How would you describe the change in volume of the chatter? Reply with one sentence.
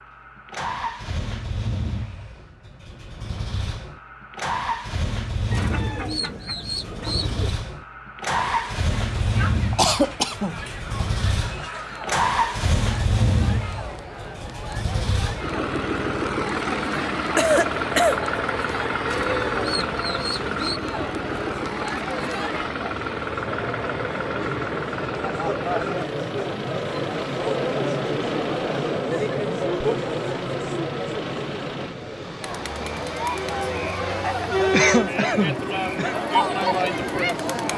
The loudness of the chatter goes up.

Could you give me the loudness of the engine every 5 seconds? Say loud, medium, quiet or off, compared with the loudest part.
medium, loud, loud, loud, loud, medium, medium, medium.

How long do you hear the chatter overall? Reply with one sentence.
The chatter can be heard for 29 seconds in total.